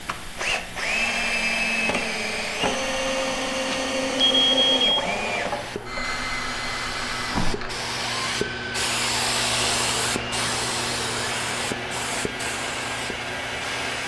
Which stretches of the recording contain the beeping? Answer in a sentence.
The beeping can be heard from 3.7 to 5.0 s.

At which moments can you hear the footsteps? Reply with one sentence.
The footsteps can't be heard in this clip.